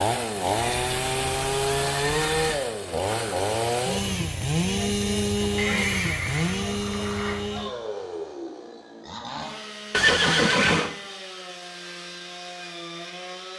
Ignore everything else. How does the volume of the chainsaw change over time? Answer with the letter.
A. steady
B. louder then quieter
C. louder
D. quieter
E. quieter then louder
D.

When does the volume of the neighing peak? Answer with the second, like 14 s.
10 s.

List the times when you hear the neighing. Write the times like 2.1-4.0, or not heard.
0.6-2.5, 5.5-7.4, 9.9-10.9.